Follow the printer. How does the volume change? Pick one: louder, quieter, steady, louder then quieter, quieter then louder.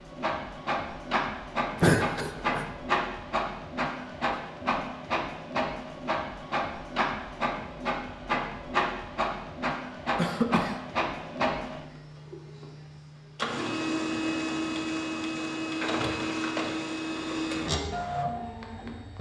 steady.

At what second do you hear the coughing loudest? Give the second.
2 s.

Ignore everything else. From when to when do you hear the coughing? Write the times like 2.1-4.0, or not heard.
1.8-2.6, 10.2-10.8.